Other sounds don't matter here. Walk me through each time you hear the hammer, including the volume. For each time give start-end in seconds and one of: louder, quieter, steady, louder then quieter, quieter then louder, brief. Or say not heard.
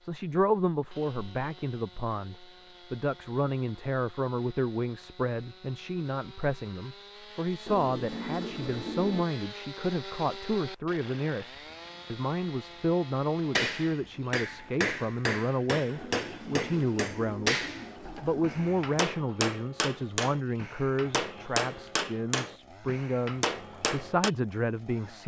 13.6-24.3 steady.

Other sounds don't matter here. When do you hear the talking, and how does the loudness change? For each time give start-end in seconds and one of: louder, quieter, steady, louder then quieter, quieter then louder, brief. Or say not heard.
0.0-25.2 steady.